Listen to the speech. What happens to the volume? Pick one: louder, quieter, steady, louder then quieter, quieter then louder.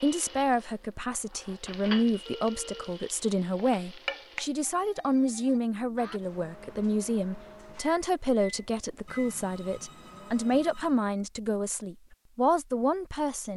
steady.